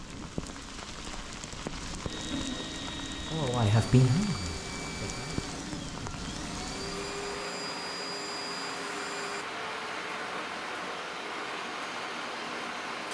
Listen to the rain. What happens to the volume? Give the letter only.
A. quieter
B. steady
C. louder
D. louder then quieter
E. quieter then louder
B.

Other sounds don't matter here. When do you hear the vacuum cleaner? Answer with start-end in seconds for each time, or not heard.
2.0-13.0.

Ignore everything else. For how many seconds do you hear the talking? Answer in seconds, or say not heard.
2 s.